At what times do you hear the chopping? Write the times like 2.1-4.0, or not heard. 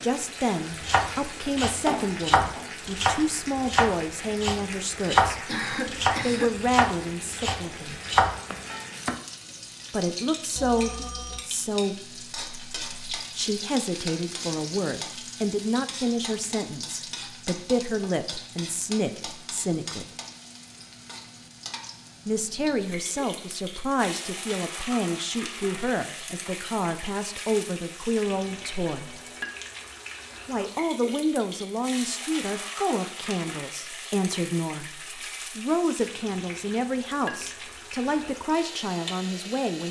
0.7-9.2.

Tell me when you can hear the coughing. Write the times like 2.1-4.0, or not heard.
5.5-6.5.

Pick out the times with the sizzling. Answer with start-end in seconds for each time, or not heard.
0.0-39.8.